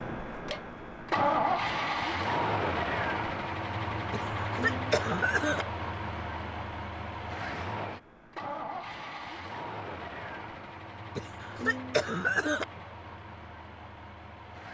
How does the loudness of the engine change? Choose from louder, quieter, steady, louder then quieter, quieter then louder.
quieter.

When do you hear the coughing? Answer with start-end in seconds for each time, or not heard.
4.1-5.7, 11.2-12.7.